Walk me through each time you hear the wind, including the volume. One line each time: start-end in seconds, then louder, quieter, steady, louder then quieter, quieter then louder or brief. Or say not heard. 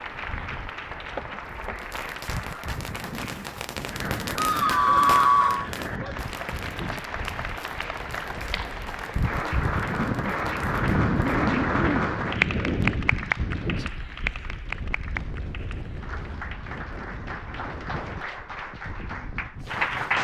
0.0-20.2 louder then quieter.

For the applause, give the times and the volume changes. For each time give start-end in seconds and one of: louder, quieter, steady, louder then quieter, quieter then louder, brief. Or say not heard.
0.0-20.2 louder then quieter.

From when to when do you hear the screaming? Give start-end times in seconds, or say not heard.
4.3-5.7.